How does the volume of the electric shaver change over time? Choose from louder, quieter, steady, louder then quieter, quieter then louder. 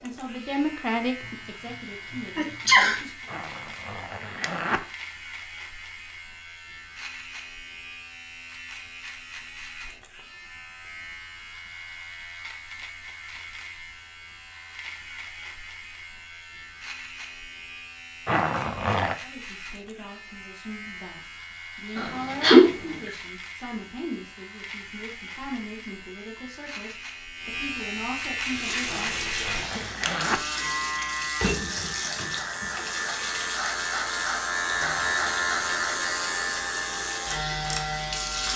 louder.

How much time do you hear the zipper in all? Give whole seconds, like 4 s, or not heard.
4 s.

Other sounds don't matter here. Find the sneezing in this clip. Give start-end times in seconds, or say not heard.
1.2-3.0, 21.9-23.1, 29.6-30.9.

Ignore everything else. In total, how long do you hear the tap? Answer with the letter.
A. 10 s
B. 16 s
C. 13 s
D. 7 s
A.